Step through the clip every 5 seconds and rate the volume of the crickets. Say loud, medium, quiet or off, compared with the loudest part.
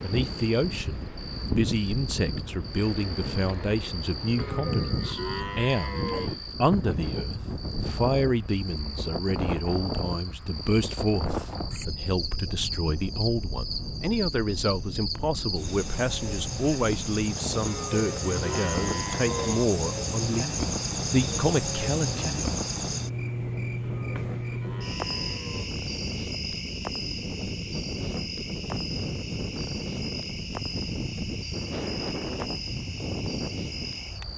medium, medium, medium, loud, loud, medium, medium.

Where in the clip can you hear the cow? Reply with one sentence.
The cow can be heard from 4.3 to 6.3 s, from 17.6 to 19.6 s and from 23.8 to 25.8 s.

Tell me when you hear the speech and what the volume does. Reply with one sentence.
You can hear the speech from 0.0 to 22.6 s, at a steady volume.